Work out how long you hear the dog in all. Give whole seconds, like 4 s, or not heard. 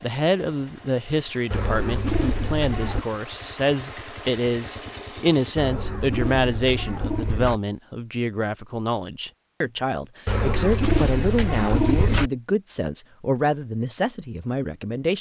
not heard.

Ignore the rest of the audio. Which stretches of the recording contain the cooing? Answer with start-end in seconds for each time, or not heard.
1.5-3.0, 5.5-7.6, 10.2-12.3.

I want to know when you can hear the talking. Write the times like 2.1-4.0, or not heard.
0.0-15.1.